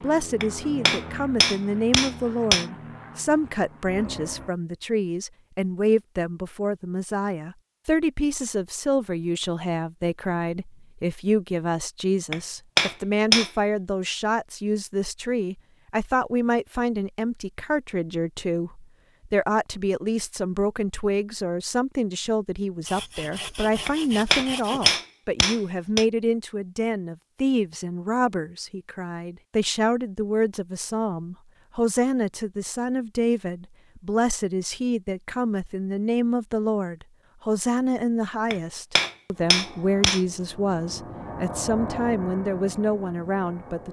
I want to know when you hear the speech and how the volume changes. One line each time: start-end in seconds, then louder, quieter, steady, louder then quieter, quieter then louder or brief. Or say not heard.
0.0-43.8 steady.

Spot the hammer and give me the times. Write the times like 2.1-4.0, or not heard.
0.4-2.6, 12.3-13.5, 23.9-26.1, 38.5-40.2.